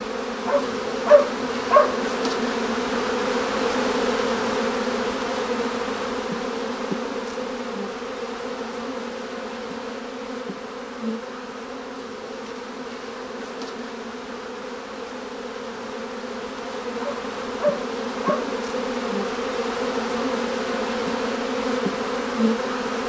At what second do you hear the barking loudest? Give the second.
1 s.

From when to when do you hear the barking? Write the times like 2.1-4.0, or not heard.
0.5-1.9, 17.0-18.5.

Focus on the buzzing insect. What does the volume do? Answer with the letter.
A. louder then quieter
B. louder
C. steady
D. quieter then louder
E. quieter
D.